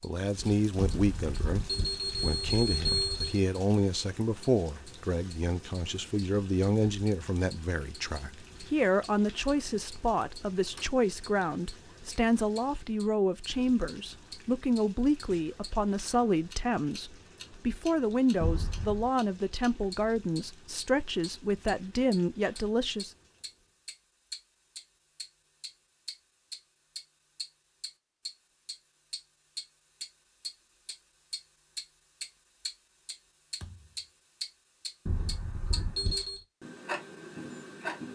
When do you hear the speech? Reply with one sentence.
The speech can be heard from 0.0 to 23.1 s.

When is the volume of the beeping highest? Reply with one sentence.
The volume of the beeping peaks at 3 seconds.